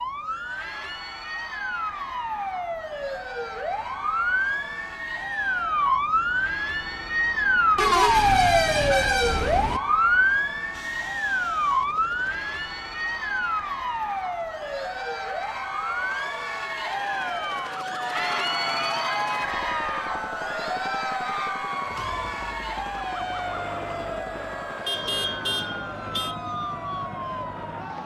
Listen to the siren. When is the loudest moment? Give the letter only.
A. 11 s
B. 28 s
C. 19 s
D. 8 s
D.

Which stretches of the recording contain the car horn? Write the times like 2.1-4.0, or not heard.
7.8-9.8, 24.9-26.4.